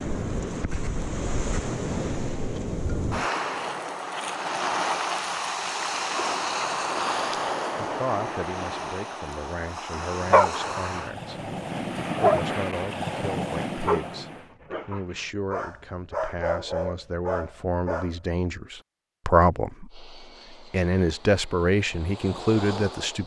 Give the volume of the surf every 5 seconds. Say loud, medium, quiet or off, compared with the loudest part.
loud, loud, loud, off, off.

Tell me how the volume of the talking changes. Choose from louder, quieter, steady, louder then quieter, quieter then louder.
louder.